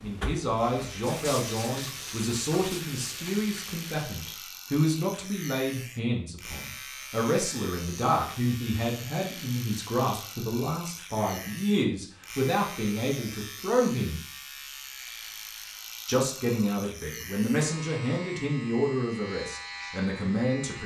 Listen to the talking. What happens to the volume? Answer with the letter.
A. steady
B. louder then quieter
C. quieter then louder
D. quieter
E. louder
A.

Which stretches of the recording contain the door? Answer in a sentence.
You can't hear the door here.